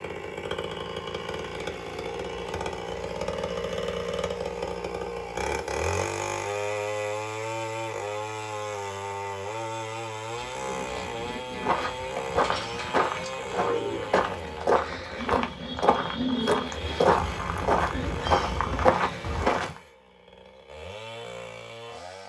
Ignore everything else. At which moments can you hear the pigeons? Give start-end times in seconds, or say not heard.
10.2-19.5.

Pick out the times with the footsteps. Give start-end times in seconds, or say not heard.
11.6-19.8.